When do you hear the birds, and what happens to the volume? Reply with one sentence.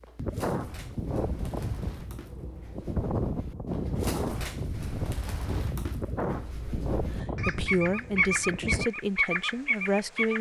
You can hear the birds from 0.0 to 10.3 s, getting louder.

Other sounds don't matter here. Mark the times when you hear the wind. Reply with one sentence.
You can hear the wind from 0.0 to 8.8 s.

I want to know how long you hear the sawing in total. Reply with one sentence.
The sawing can't be heard in this clip.